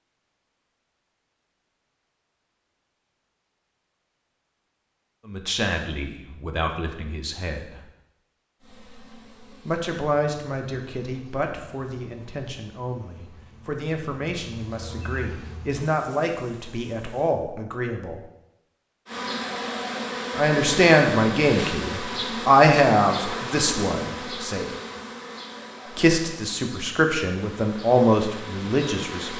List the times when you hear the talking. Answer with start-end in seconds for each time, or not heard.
5.2-7.8, 9.7-18.2, 20.4-24.6, 25.9-29.3.